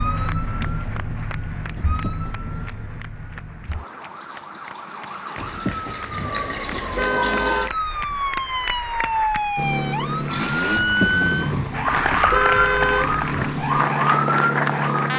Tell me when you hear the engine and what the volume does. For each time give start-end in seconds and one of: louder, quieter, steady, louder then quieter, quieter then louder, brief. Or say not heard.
9.6-15.1 quieter then louder.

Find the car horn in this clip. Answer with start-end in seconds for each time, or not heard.
1.8-2.9, 5.3-7.8, 10.8-13.2.